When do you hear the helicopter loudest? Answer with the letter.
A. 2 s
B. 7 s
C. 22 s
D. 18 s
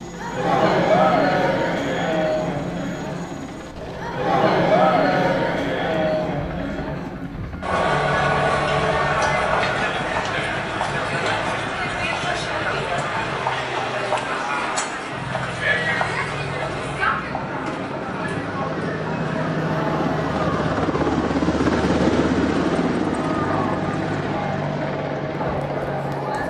C.